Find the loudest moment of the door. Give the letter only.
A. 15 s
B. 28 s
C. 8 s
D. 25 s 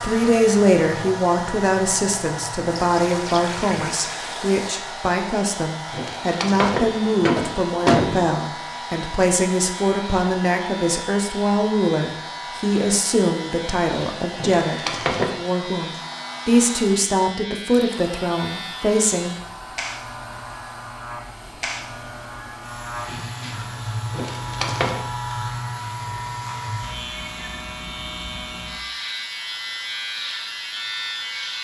C.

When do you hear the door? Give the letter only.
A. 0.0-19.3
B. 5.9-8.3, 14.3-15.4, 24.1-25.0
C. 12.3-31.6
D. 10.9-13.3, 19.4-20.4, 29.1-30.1
B.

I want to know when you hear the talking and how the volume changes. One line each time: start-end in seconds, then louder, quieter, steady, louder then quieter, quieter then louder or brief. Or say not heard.
0.0-19.3 steady.